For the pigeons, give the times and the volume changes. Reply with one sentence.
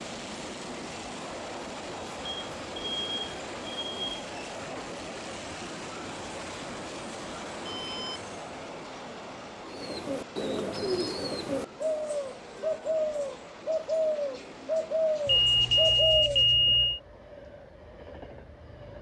You can hear the pigeons from 9.7 to 16.4 s, at a steady volume.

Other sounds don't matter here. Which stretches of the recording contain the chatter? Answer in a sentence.
You can't hear the chatter here.